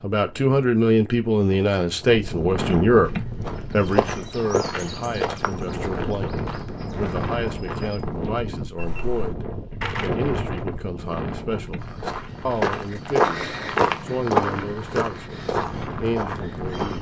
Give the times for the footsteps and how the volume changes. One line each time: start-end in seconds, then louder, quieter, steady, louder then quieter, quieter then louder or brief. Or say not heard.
3.0-8.1 quieter
11.8-16.9 louder then quieter.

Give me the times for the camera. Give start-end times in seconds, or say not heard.
9.8-10.7.